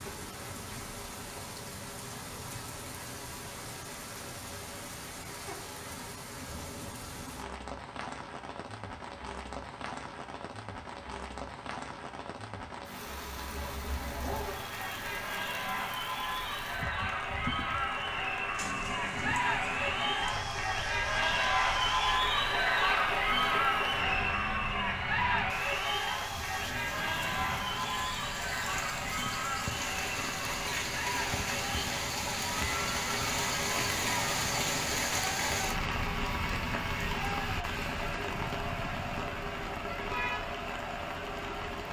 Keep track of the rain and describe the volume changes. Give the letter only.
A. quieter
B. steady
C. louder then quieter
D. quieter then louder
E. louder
E.